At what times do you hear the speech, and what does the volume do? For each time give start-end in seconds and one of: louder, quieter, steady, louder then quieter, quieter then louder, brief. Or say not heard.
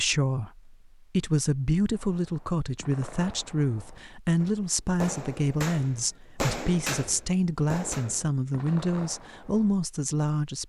0.0-10.6 steady.